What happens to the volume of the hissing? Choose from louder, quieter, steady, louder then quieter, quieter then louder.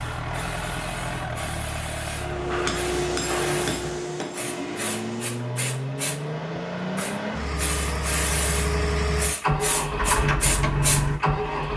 louder.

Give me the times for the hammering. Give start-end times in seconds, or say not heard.
2.1-5.5.